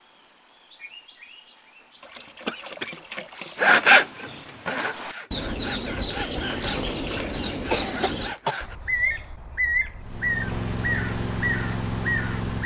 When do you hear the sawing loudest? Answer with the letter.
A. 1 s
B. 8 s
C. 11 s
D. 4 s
D.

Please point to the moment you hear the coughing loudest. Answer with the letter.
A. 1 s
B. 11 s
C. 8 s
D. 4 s
C.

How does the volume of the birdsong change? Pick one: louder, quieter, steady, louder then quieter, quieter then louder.
louder.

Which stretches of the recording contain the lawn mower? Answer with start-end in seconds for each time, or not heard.
10.0-12.6.